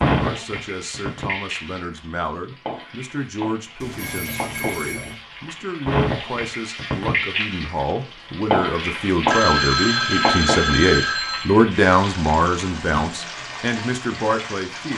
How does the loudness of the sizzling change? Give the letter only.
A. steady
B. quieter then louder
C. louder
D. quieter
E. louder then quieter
E.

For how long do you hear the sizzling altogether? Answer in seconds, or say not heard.
15 s.